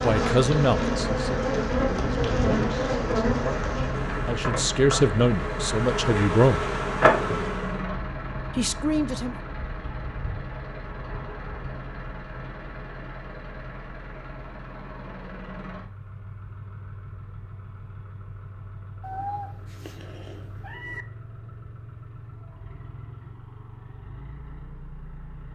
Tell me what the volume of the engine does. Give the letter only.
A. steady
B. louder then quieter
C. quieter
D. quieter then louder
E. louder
C.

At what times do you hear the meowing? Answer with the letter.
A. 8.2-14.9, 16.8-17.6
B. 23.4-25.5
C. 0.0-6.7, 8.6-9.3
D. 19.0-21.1
D.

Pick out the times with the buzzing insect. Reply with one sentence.
You can hear the buzzing insect from 0.0 to 7.8 s.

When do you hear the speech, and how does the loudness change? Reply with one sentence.
You can hear the speech from 0.0 to 6.7 s, getting quieter then louder; and briefly from 8.6 to 9.3 s.